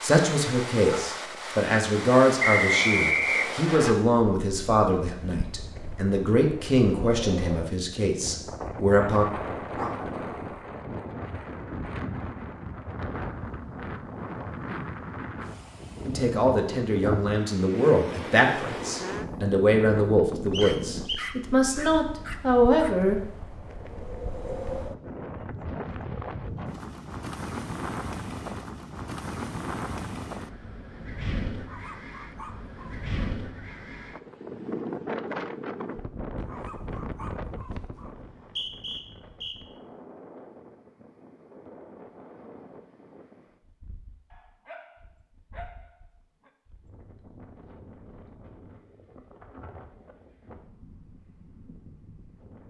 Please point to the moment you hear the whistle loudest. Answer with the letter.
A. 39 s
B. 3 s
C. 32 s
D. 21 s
B.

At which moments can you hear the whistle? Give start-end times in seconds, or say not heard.
2.4-4.0, 20.5-21.3, 38.4-39.5.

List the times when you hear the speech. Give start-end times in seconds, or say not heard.
0.0-9.2, 16.1-23.2.